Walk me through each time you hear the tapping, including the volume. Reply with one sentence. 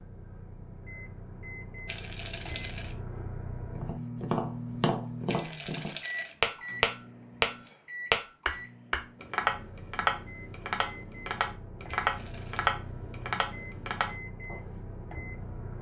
You can hear the tapping from 3.7 to 14.8 s, getting louder then quieter.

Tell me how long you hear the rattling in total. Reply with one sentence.
The rattling can be heard for 3 seconds in total.